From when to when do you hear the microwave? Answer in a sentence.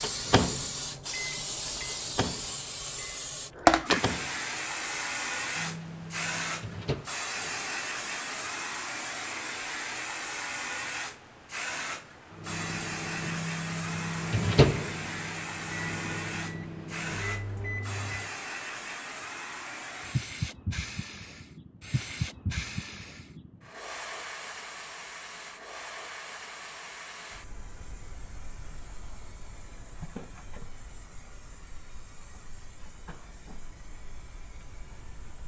You can hear the microwave from 0.0 to 7.1 s and from 12.3 to 18.3 s.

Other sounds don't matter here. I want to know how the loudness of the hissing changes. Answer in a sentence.
The loudness of the hissing goes down.